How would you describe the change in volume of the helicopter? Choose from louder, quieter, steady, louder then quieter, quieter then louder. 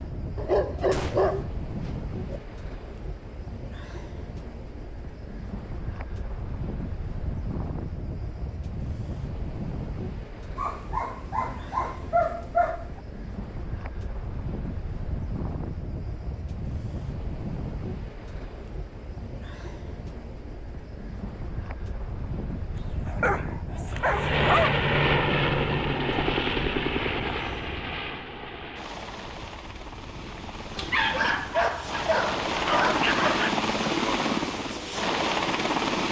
quieter then louder.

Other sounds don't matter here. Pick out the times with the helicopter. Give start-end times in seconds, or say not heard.
23.9-36.0.